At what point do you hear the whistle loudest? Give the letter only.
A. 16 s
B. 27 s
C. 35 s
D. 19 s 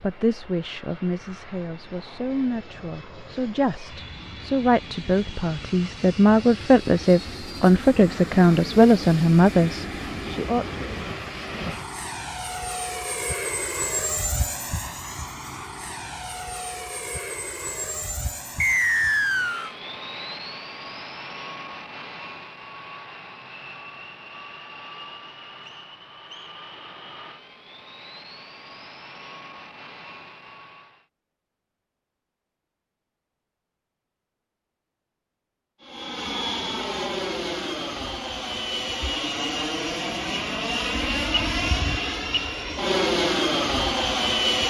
D.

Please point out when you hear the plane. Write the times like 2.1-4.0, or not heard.
0.0-31.1, 35.8-44.6.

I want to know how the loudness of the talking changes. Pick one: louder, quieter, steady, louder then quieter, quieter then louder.
louder.